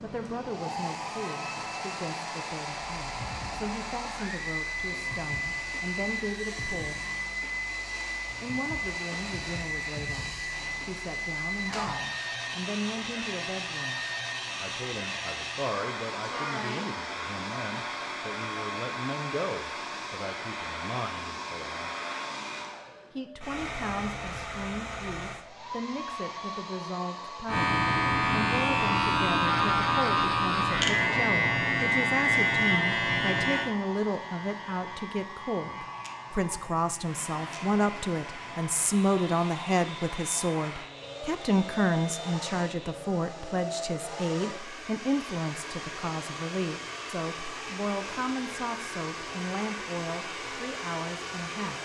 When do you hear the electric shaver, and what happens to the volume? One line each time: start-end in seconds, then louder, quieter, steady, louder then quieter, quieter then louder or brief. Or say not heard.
27.4-43.0 quieter.